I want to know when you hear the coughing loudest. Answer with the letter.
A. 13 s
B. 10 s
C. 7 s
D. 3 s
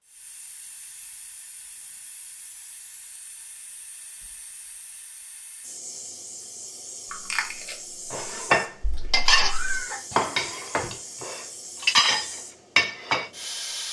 B.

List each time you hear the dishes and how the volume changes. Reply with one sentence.
You can hear the dishes from 8.1 to 13.3 s, getting quieter then louder.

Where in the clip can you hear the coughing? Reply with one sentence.
You can hear the coughing from 9.0 to 11.0 s.